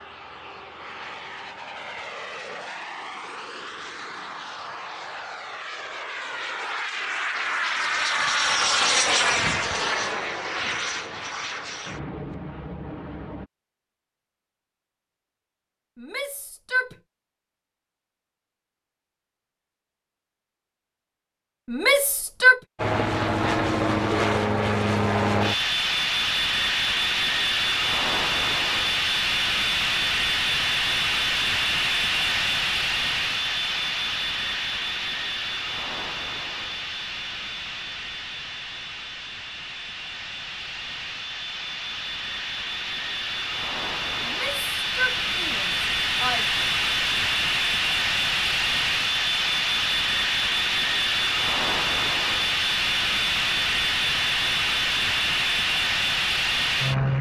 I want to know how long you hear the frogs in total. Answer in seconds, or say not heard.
not heard.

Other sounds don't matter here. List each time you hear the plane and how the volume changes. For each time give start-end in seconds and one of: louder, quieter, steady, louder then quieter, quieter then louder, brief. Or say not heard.
0.0-13.5 louder then quieter
22.8-57.1 quieter then louder.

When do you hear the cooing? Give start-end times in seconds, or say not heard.
not heard.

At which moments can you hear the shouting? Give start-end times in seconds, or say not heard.
15.9-16.9, 21.6-22.6, 44.2-46.5.